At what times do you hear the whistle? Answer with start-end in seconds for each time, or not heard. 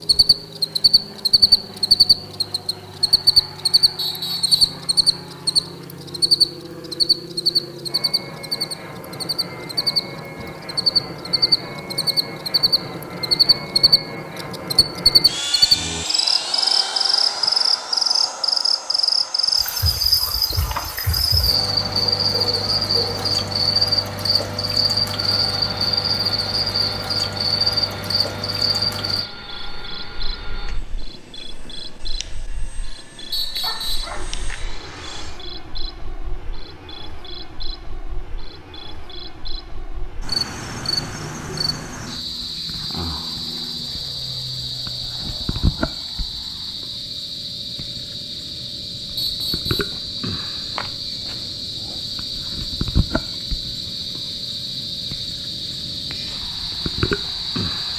4.0-4.8, 33.3-34.1, 49.1-50.0.